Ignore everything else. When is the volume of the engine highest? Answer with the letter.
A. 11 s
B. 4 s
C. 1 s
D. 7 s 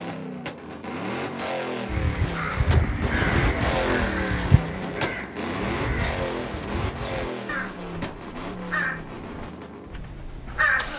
B.